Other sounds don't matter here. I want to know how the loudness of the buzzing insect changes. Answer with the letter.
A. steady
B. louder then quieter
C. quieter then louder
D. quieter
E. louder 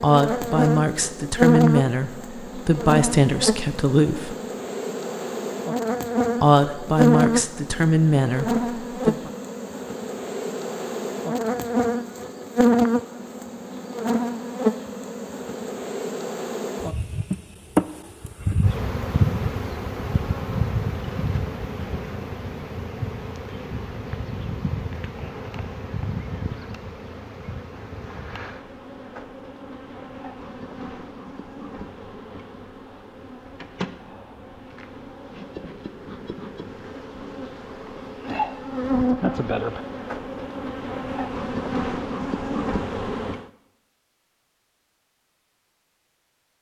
C.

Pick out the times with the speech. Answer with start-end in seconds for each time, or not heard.
0.0-4.3, 6.4-9.3.